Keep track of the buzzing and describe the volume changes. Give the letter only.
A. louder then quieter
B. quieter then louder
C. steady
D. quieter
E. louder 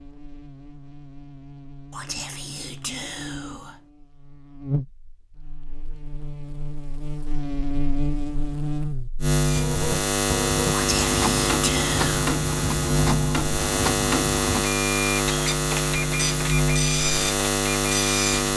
E.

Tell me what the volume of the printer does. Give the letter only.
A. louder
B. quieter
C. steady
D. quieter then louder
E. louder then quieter
C.